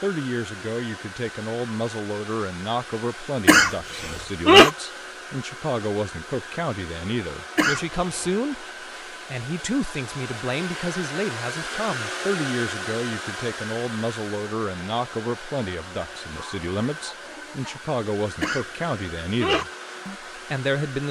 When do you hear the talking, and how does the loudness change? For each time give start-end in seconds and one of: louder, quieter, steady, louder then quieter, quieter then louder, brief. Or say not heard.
0.0-21.0 steady.